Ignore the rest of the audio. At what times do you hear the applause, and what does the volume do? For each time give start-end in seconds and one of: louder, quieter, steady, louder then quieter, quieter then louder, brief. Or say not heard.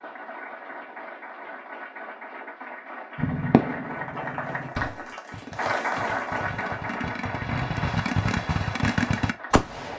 0.0-9.7 louder then quieter.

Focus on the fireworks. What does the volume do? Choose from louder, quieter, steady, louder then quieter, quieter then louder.
quieter then louder.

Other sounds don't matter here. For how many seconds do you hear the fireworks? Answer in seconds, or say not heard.
7 s.